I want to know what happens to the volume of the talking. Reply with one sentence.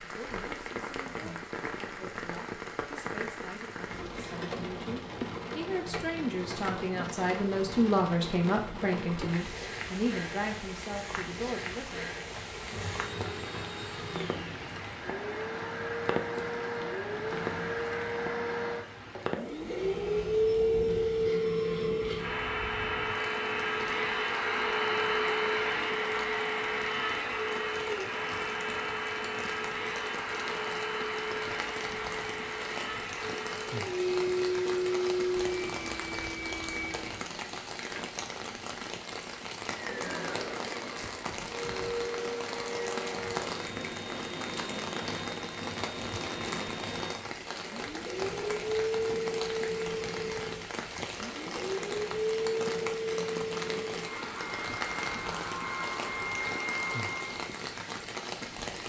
The volume of the talking goes up, then down.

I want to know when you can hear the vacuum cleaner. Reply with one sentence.
You can hear the vacuum cleaner from 12.5 to 37.4 s and from 39.6 to 57.5 s.